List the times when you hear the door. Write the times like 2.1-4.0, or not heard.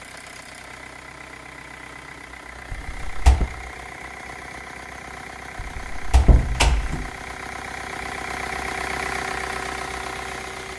2.7-3.5, 5.5-7.1.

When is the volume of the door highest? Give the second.
6 s.